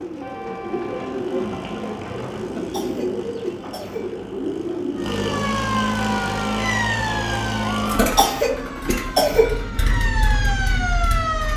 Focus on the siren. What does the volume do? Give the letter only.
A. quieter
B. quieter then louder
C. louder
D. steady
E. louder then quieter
B.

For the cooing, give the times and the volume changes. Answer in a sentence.
You can hear the cooing from 0.0 to 5.4 s, at a steady volume.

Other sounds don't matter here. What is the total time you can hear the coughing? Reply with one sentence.
The coughing can be heard for 3 seconds in total.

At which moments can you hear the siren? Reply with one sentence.
You can hear the siren from 5.0 to 11.5 s.